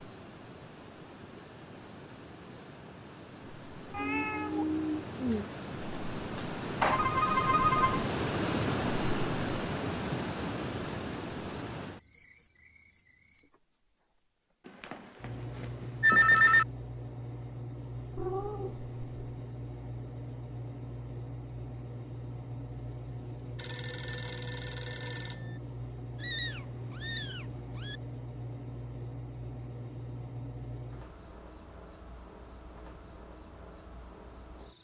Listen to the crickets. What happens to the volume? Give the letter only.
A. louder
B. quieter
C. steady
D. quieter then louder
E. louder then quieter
E.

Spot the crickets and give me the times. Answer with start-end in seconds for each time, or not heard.
0.0-34.7.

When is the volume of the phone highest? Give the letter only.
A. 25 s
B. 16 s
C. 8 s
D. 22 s
B.